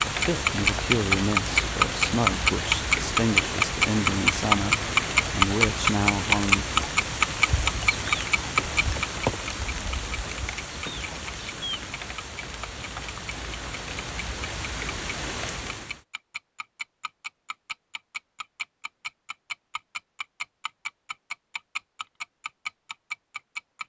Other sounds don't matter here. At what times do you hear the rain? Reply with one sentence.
You can hear the rain from 0.0 to 16.0 s.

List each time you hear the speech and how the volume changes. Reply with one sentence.
The speech can be heard from 0.1 to 6.8 s, at a steady volume.